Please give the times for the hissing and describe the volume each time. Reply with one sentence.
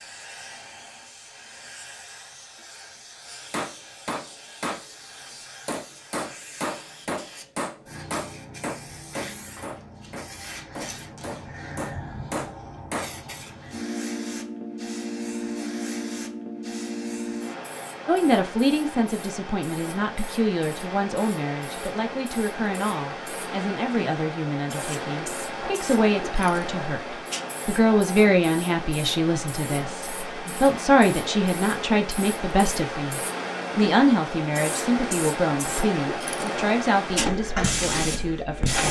You can hear the hissing from 0.0 to 38.8 s, getting louder.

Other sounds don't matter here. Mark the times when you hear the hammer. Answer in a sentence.
You can hear the hammer from 3.5 to 4.8 s and from 5.7 to 13.2 s.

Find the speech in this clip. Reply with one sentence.
You can hear the speech from 18.1 to 38.8 s.